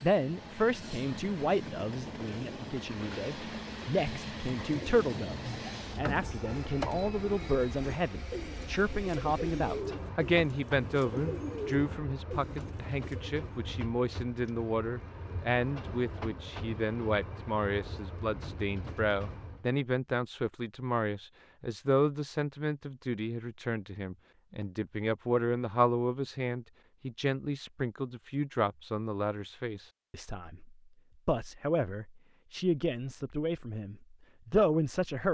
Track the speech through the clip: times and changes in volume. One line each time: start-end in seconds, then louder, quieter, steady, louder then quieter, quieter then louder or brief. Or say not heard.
0.0-35.2 steady.